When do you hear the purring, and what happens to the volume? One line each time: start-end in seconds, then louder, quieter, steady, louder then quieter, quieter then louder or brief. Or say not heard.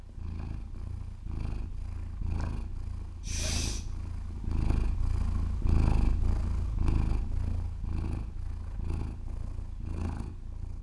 0.0-10.7 louder then quieter.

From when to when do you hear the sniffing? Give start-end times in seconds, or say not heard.
3.2-3.9.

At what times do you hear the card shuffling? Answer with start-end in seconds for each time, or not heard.
not heard.